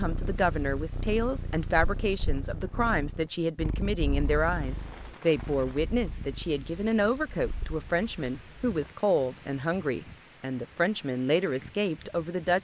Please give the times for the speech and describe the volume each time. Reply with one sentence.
You can hear the speech from 0.0 to 12.5 s, at a steady volume.